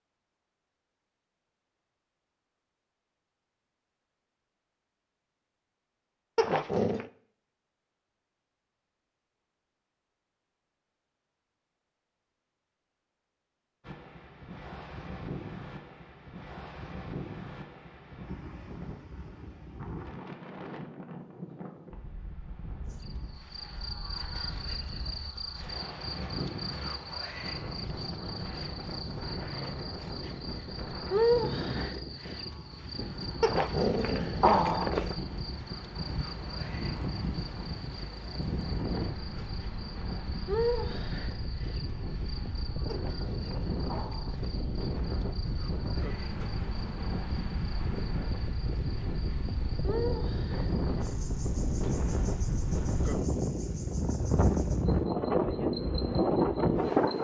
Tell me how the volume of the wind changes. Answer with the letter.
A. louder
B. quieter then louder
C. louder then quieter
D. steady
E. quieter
A.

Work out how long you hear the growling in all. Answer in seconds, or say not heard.
4 s.